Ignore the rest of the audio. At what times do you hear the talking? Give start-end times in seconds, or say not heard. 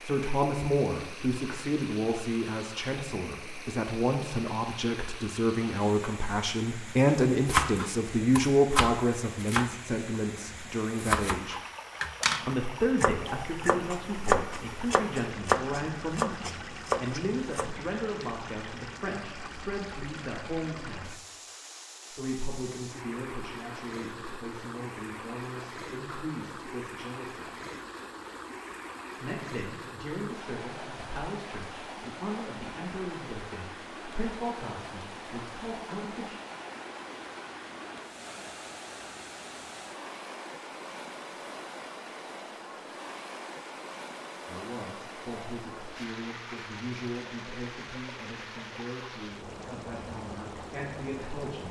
0.0-11.6, 12.4-21.2, 22.1-27.5, 29.2-36.4, 44.5-51.6.